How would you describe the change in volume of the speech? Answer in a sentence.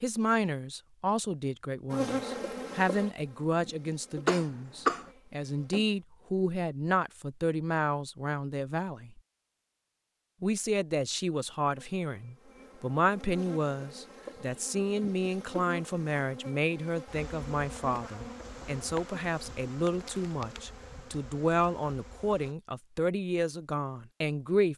The volume of the speech stays about the same.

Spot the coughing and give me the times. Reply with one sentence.
The coughing can be heard from 4.2 to 5.0 s.